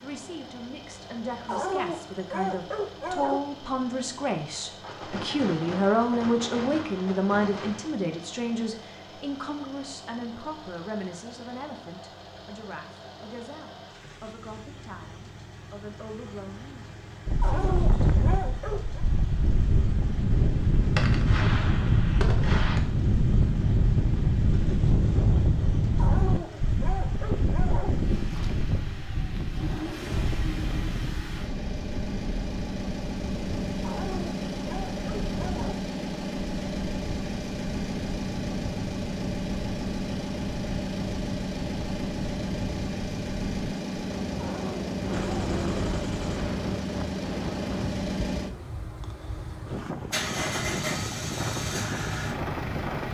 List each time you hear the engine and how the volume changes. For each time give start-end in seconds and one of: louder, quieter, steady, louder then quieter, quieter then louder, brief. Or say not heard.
0.0-53.0 louder.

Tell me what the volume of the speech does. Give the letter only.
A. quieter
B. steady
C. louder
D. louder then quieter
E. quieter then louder
D.